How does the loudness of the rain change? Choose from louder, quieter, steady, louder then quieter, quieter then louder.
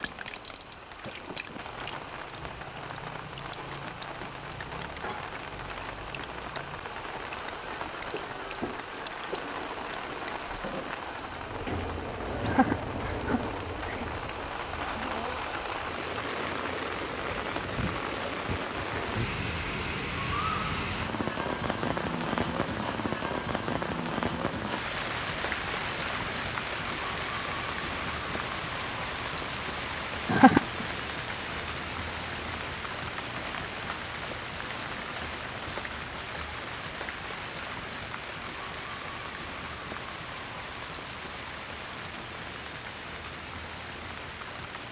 louder then quieter.